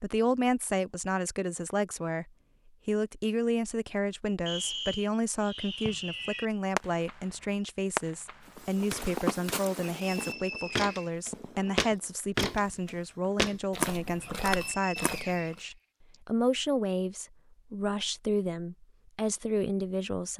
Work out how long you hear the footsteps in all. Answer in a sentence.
The footsteps can be heard for 7 seconds in total.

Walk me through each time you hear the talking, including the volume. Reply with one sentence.
The talking can be heard from 0.0 to 20.3 s, at a steady volume.